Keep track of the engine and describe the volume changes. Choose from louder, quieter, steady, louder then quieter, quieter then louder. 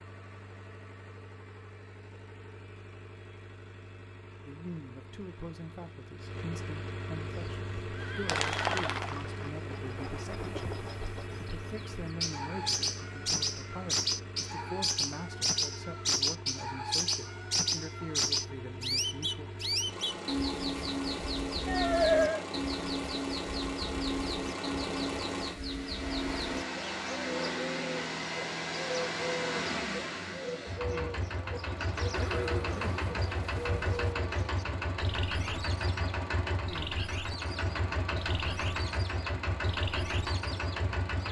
louder.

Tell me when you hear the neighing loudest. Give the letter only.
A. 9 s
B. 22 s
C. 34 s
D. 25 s
B.